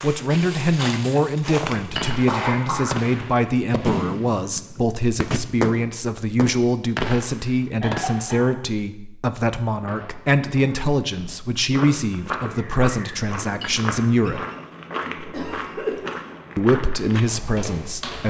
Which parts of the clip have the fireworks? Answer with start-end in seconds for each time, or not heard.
1.9-8.4.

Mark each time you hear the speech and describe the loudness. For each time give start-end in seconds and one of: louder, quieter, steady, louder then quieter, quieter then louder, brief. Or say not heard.
0.0-14.4 steady
16.6-18.2 brief.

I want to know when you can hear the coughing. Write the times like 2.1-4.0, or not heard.
1.7-3.0, 7.8-8.6, 15.2-16.0.